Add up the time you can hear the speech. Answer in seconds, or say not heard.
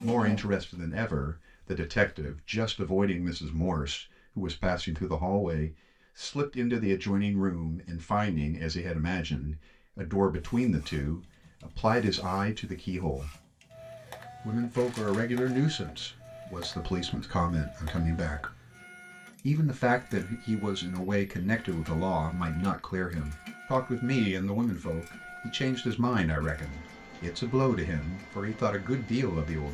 28 s.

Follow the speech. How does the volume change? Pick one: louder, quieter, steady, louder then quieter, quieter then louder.
steady.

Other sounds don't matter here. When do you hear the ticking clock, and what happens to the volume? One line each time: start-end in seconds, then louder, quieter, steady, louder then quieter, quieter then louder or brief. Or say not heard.
not heard.